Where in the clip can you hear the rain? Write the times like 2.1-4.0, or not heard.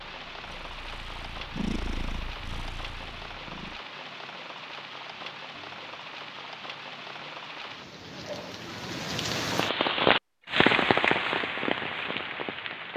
0.0-12.9.